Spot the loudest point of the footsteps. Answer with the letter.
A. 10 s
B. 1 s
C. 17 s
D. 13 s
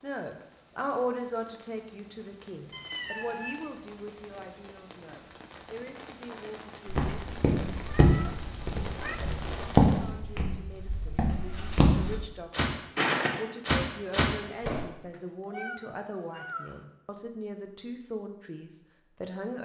A.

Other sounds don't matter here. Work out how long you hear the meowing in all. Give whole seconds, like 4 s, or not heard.
4 s.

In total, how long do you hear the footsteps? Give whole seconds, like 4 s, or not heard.
8 s.